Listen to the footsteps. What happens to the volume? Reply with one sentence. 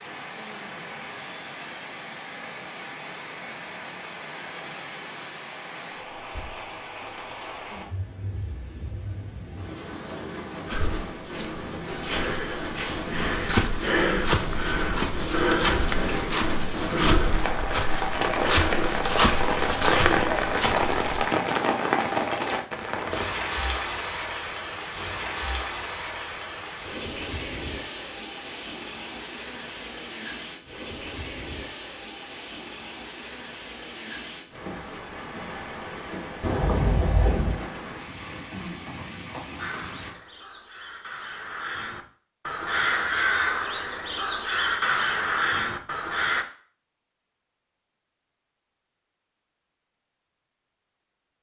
The volume of the footsteps goes up.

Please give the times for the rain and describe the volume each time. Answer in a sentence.
The rain can be heard from 0.0 to 40.1 s, getting louder then quieter.